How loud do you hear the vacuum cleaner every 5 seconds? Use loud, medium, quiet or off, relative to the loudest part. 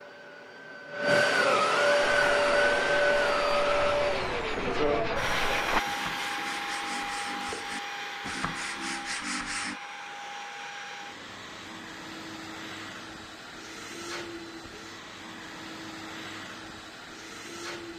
loud, medium, quiet, quiet.